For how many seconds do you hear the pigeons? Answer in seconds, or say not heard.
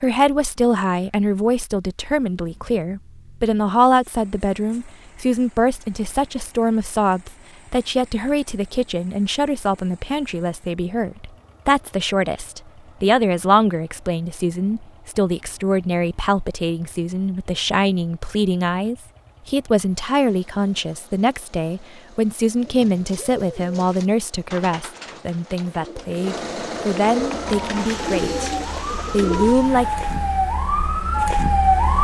7 s.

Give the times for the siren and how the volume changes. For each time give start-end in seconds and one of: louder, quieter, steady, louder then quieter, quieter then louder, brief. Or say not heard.
27.4-31.9 louder.